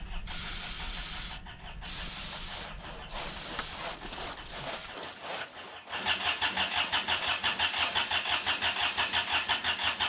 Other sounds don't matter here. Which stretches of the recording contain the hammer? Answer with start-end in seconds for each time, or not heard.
not heard.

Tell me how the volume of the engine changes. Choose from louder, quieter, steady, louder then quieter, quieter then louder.
louder.